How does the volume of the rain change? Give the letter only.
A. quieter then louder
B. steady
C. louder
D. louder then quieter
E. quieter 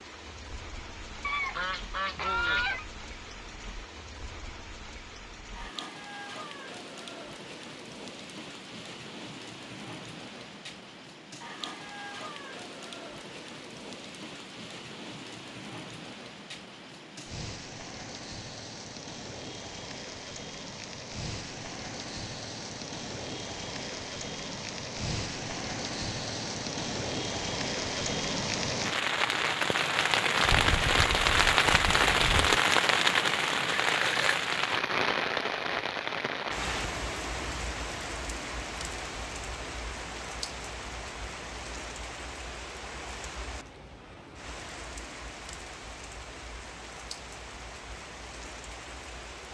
D.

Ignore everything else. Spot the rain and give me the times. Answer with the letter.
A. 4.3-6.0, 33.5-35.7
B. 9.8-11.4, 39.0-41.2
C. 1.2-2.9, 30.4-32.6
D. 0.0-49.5
D.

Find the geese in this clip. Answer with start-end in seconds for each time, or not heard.
1.2-2.9, 30.4-32.6.